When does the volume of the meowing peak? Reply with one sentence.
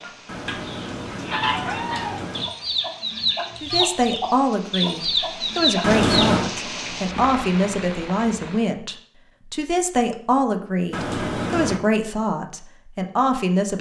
The loudest moment of the meowing is at 6 seconds.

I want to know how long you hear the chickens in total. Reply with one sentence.
You can hear the chickens for 6 seconds altogether.